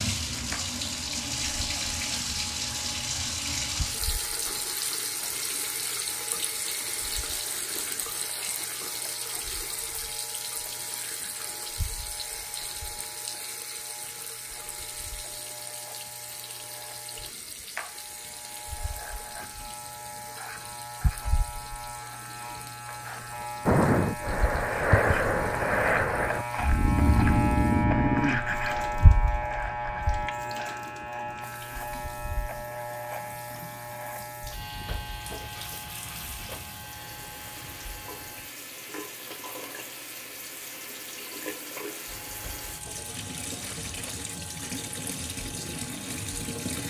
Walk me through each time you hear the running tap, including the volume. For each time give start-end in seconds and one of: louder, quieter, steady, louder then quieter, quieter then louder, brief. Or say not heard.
0.0-46.8 quieter then louder.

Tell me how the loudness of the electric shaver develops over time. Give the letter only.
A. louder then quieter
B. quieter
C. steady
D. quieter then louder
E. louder
A.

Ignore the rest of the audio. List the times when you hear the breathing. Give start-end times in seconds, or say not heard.
23.6-29.1.